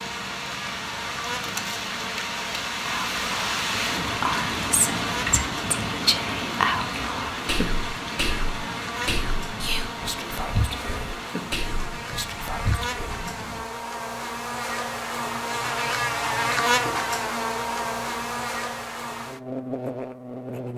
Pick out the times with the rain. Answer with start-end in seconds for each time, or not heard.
0.0-13.7.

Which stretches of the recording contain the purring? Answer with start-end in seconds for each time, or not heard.
not heard.